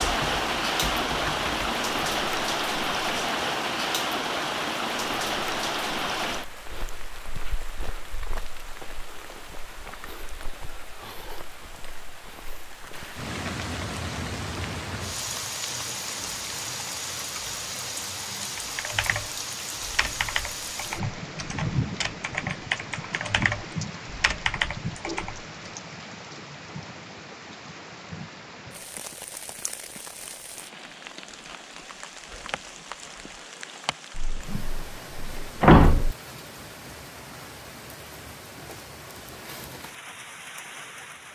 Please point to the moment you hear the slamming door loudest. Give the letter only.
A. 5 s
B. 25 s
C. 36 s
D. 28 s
C.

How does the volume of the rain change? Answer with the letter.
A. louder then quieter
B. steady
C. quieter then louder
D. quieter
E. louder
D.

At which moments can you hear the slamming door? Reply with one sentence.
You can hear the slamming door from 34.1 to 36.1 s.